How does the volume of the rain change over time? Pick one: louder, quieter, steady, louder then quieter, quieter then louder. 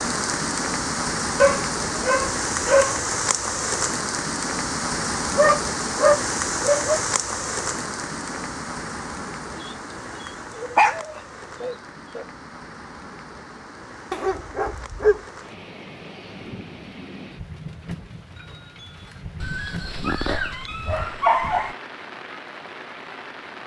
quieter.